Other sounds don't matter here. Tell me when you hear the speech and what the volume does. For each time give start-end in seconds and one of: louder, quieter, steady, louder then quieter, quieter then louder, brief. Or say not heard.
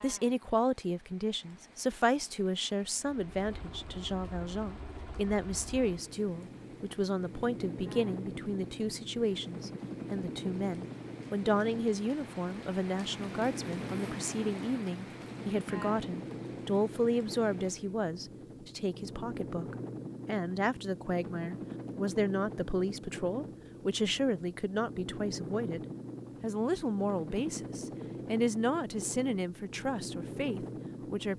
0.0-31.3 steady.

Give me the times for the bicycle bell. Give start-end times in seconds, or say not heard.
not heard.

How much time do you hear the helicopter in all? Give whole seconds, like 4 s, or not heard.
28 s.